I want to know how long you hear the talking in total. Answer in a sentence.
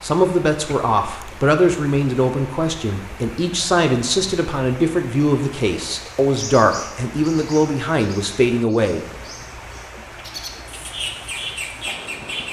You can hear the talking for 9 seconds altogether.